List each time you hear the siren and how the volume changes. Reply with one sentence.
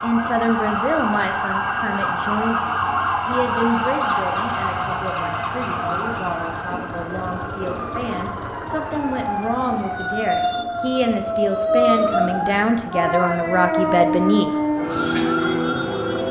The siren can be heard from 0.0 to 16.2 s, getting quieter then louder.